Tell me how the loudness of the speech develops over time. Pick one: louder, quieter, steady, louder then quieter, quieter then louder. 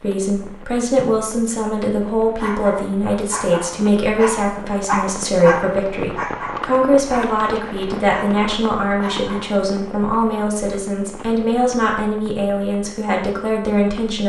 steady.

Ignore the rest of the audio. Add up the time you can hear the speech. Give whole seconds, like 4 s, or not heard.
14 s.